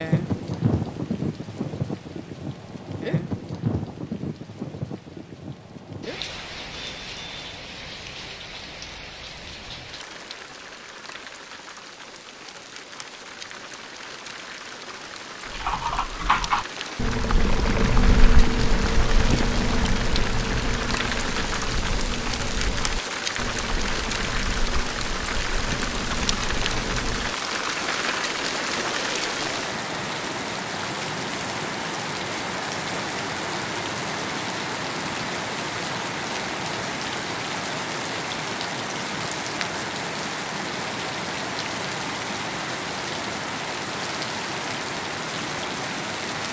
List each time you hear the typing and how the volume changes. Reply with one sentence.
You can hear the typing from 15.4 to 27.4 s, getting quieter.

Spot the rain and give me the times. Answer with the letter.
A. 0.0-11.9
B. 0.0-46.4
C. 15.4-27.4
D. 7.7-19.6
B.